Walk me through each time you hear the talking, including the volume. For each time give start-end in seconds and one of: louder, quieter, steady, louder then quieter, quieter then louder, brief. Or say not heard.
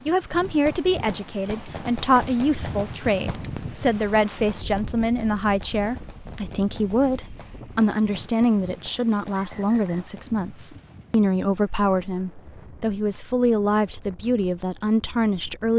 0.1-15.7 steady.